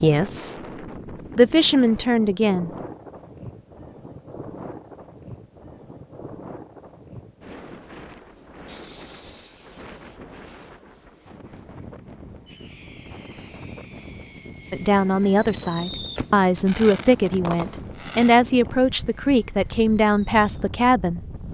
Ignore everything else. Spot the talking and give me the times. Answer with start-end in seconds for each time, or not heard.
0.0-0.6, 1.4-2.7, 14.7-21.4.